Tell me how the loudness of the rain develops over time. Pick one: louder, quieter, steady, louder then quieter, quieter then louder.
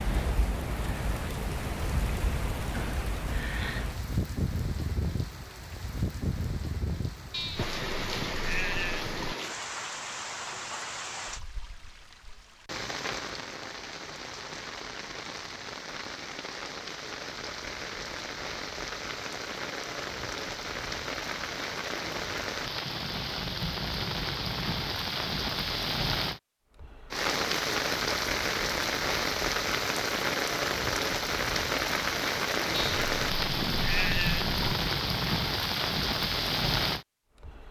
louder.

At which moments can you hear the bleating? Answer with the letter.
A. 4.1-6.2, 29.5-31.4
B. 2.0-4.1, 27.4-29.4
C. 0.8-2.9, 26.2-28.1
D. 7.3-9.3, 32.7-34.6
D.